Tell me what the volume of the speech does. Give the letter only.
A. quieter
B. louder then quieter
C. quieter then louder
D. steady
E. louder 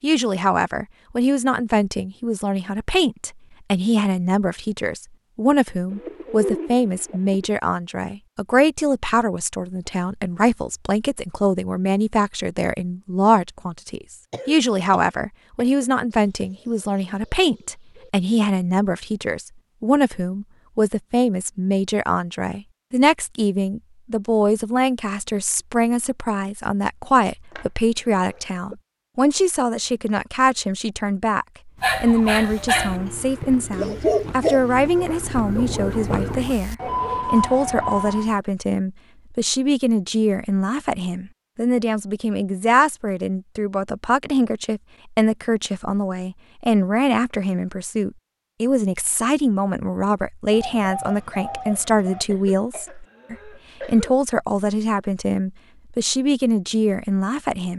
D.